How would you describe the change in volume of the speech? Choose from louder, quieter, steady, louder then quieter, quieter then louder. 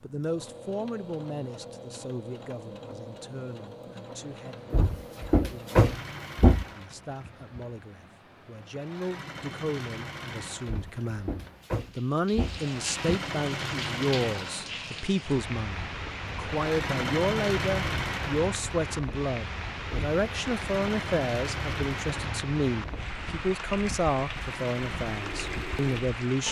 louder.